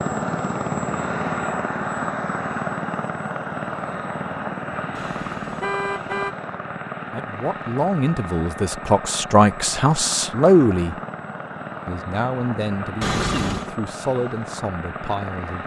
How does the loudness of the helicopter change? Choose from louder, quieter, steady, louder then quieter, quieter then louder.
quieter.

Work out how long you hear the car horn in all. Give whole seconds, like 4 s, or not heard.
2 s.